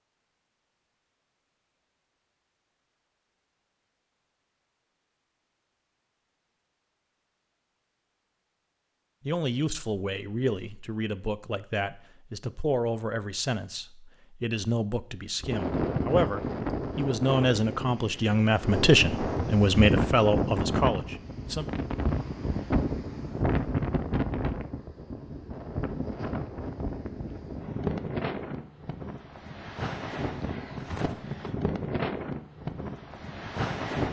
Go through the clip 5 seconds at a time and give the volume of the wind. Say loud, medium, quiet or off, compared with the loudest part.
off, off, off, loud, loud, medium, loud.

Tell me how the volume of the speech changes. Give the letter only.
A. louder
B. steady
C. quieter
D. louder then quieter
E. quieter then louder
A.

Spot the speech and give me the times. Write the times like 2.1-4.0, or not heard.
9.2-21.6.